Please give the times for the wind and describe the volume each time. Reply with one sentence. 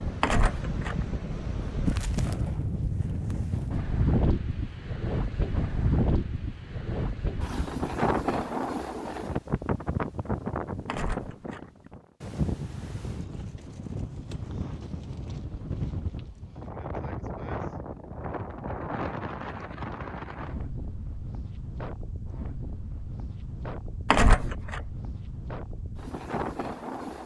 The wind can be heard from 0.0 to 27.2 s, getting quieter.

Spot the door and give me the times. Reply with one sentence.
The door can be heard from 0.2 to 0.9 s, from 10.8 to 11.6 s and from 24.1 to 24.8 s.